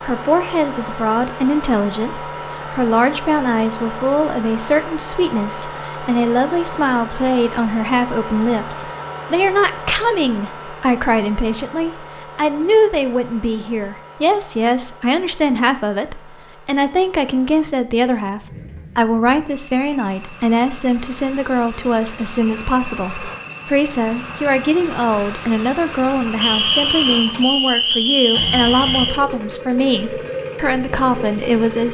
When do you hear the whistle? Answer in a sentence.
The whistle can be heard from 26.4 to 29.2 s.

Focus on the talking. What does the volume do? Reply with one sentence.
The volume of the talking stays about the same.